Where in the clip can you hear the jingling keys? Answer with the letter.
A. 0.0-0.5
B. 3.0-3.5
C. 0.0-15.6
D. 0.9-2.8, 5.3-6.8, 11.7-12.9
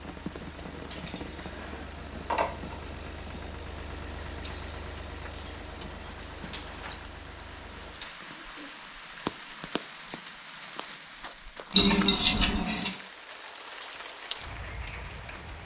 D.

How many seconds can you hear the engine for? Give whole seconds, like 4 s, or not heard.
8 s.